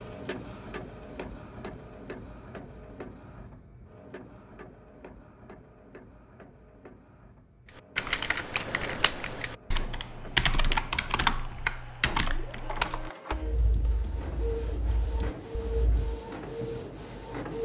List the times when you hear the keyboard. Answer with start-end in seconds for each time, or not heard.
7.8-16.2.